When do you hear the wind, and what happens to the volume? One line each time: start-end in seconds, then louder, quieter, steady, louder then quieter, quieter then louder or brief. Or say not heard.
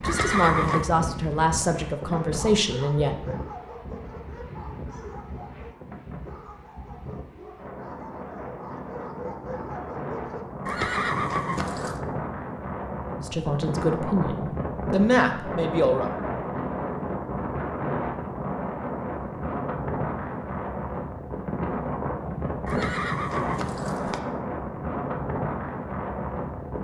0.0-26.7 louder.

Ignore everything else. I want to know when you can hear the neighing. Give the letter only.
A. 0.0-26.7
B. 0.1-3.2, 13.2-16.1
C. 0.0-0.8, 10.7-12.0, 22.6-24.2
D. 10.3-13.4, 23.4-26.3
C.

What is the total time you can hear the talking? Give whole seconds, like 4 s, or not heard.
6 s.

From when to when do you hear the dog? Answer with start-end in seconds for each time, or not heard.
1.9-10.4.